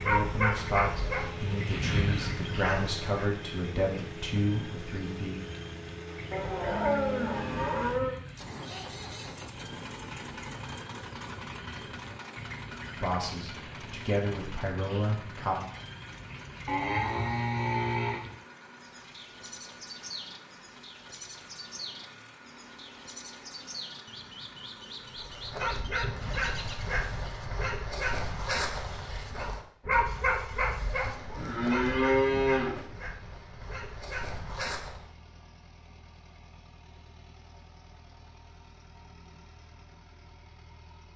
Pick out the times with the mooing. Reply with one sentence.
You can hear the mooing from 6.3 to 8.2 s, from 16.6 to 18.2 s and from 31.4 to 32.8 s.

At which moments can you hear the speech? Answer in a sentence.
You can hear the speech from 0.1 to 5.3 s and from 12.9 to 15.6 s.